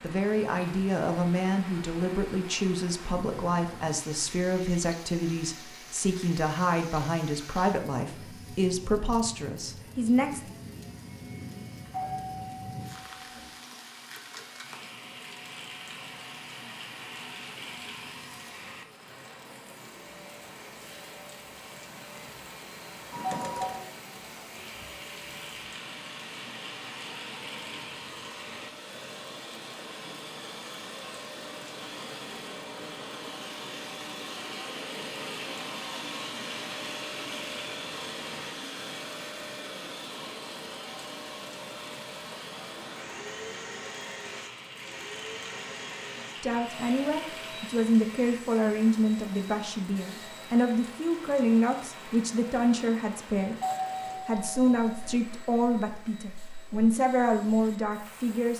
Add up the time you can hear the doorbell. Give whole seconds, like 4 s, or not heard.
4 s.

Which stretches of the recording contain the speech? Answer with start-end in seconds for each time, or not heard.
0.0-10.4, 46.4-53.5, 54.2-58.5.